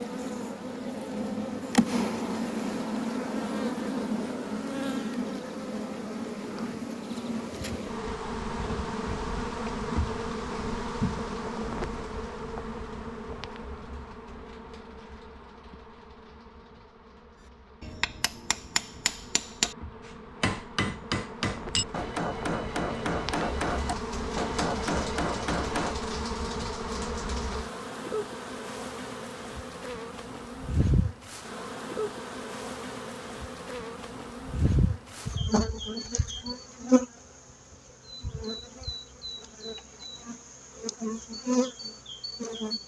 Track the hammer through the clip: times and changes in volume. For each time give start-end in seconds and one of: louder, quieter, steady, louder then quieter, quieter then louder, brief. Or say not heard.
17.8-26.1 steady.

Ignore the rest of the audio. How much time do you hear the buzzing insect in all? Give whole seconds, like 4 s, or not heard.
43 s.